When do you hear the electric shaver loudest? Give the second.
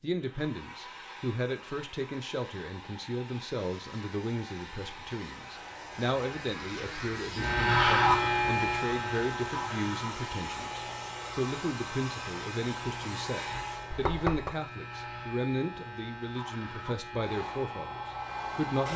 8 s.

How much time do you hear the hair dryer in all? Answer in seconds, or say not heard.
16 s.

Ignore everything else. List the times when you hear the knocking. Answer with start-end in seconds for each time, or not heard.
13.9-14.6.